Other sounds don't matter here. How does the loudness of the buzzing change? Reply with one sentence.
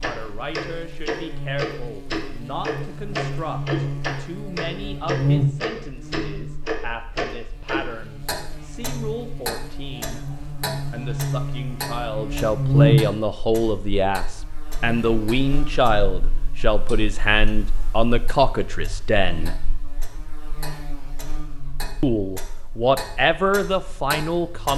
The loudness of the buzzing goes up, then down.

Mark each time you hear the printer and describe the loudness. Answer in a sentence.
You can't hear the printer here.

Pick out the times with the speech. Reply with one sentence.
The speech can be heard from 0.0 to 10.2 s, from 10.9 to 19.6 s and from 22.0 to 24.7 s.